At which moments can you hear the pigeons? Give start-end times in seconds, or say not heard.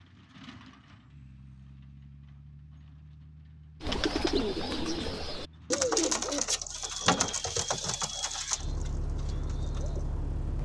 3.8-10.2.